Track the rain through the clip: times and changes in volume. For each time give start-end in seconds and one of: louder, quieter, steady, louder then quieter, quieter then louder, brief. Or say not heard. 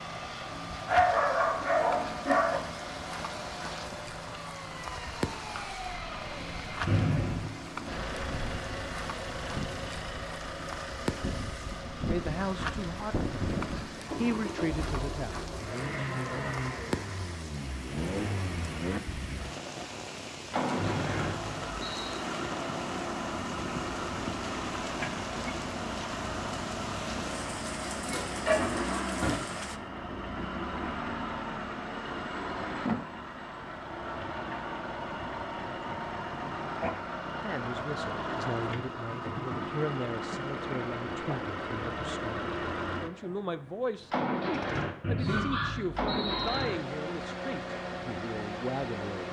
0.0-29.8 steady.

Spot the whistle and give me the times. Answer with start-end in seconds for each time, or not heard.
6.8-7.5, 20.8-22.2, 45.0-46.6.